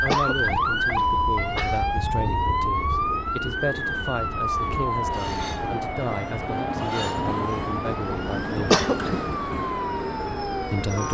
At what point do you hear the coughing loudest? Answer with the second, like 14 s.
9 s.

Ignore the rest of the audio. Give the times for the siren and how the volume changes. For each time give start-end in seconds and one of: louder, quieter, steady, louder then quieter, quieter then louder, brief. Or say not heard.
0.0-11.0 quieter.